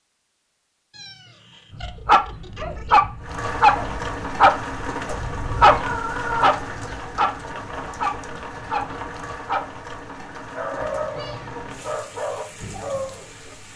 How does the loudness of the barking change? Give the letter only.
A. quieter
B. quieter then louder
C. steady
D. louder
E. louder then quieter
A.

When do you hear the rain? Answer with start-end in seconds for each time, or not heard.
3.2-13.7.